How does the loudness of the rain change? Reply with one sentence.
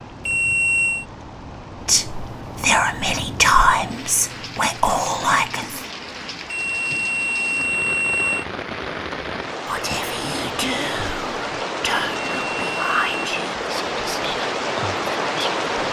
The volume of the rain goes up.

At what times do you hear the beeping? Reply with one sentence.
The beeping can be heard from 0.2 to 1.1 s, from 6.5 to 8.4 s and from 12.1 to 13.1 s.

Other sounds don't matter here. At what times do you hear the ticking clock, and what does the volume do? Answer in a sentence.
The ticking clock can't be heard in this clip.